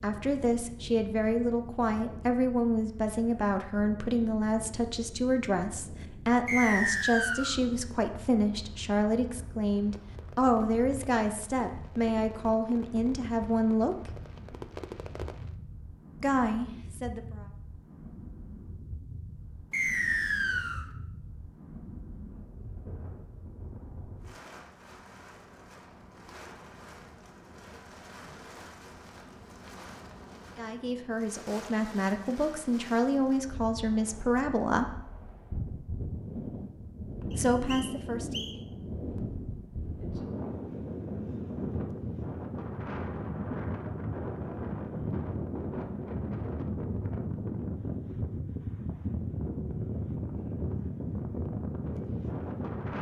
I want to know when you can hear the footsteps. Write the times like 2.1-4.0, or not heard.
not heard.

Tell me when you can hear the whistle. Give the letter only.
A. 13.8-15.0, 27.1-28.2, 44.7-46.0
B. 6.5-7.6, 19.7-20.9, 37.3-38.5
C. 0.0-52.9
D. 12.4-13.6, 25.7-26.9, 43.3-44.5
B.